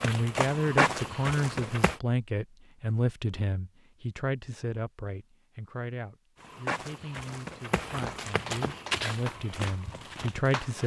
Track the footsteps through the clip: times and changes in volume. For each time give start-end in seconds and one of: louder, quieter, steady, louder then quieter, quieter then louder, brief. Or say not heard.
0.0-1.9 brief
6.3-10.8 louder then quieter.